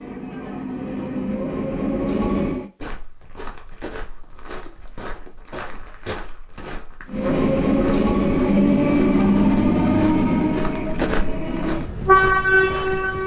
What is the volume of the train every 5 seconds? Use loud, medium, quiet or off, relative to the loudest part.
medium, loud, loud.